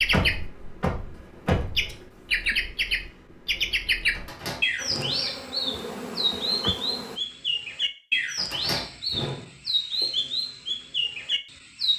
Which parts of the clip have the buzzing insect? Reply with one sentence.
You can hear the buzzing insect from 4.8 to 7.2 s.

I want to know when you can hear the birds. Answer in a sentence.
The birds can be heard from 0.0 to 11.9 s.